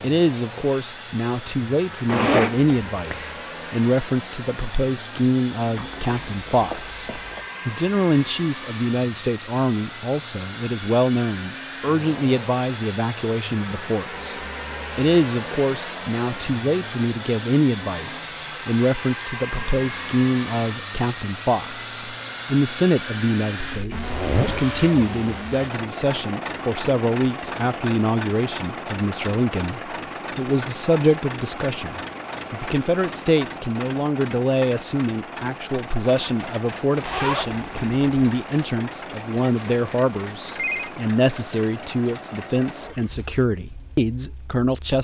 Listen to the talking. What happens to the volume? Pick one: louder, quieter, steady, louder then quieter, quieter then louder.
steady.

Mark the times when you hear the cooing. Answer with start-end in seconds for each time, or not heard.
not heard.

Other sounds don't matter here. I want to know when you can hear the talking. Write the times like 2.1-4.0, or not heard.
0.0-44.9.